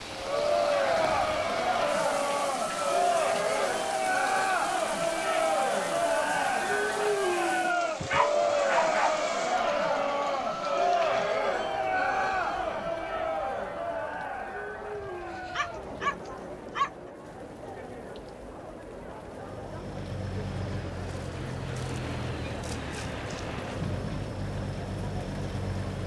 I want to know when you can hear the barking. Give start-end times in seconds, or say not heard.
8.0-9.2, 14.9-16.9.